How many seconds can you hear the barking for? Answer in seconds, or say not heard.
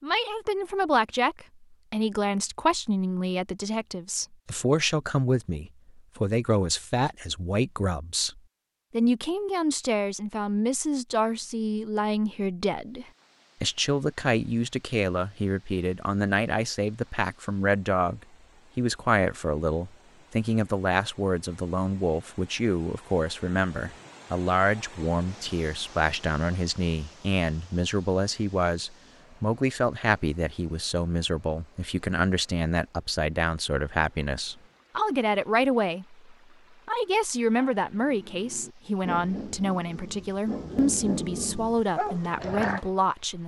5 s.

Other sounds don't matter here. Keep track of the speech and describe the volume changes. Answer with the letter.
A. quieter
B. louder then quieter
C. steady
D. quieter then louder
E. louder
C.